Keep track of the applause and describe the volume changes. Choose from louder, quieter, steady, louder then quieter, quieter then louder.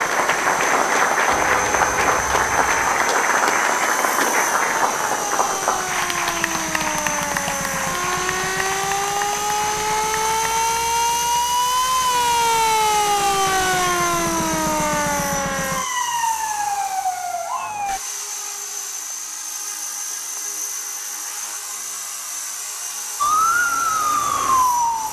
quieter.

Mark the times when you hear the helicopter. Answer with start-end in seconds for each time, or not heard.
0.0-25.0.